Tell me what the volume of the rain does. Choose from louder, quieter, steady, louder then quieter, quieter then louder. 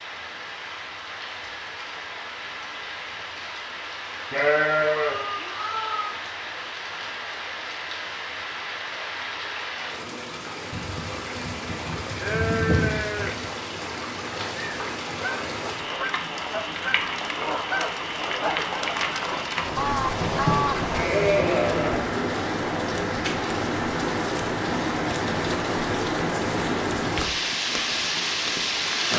louder.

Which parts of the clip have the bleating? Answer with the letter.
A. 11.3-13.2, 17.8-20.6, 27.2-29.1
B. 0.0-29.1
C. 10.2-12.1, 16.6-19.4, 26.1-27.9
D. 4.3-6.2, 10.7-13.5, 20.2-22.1
D.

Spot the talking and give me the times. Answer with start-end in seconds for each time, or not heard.
not heard.